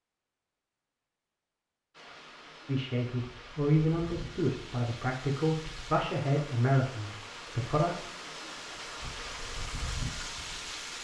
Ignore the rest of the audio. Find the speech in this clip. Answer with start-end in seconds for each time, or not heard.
2.6-8.1.